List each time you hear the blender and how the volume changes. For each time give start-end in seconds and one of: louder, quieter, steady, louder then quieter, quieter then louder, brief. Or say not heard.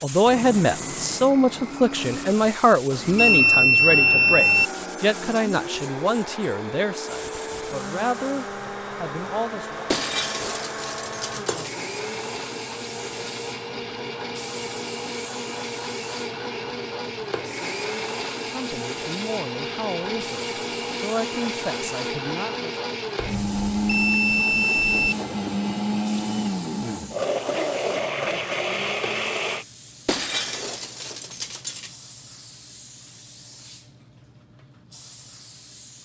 0.2-29.6 louder.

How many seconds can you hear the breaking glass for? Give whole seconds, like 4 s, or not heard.
4 s.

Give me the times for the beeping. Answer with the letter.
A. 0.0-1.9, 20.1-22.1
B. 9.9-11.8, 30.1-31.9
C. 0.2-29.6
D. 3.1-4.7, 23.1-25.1
D.